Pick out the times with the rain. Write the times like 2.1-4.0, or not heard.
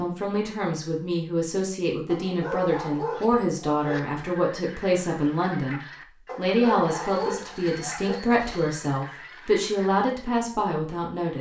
not heard.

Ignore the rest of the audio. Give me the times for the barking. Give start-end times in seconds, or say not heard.
2.1-4.0, 6.2-8.2.